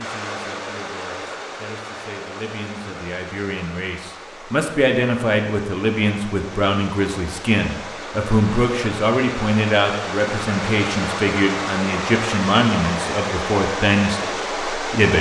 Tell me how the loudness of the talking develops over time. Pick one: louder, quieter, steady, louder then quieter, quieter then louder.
louder.